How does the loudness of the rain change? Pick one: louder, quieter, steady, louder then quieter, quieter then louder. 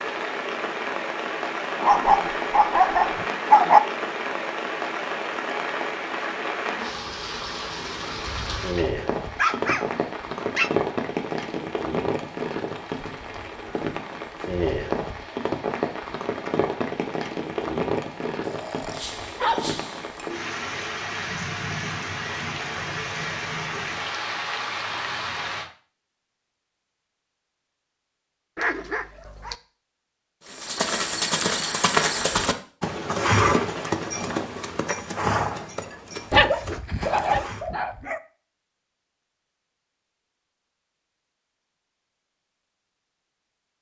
steady.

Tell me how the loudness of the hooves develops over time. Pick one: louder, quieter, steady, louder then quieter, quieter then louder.
quieter.